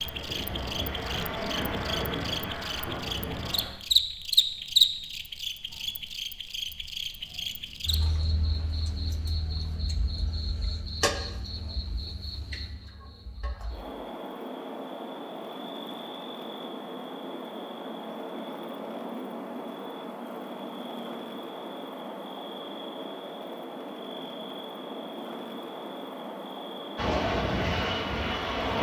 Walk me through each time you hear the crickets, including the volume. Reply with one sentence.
You can hear the crickets from 0.0 to 28.7 s, getting quieter.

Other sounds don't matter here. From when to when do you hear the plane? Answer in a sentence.
The plane can be heard from 0.0 to 3.7 s and from 26.9 to 28.7 s.